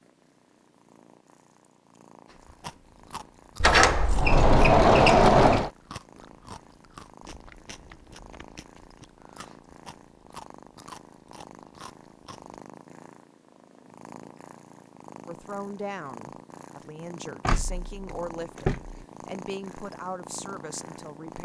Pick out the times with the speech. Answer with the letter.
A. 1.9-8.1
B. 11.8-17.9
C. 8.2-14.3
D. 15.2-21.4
D.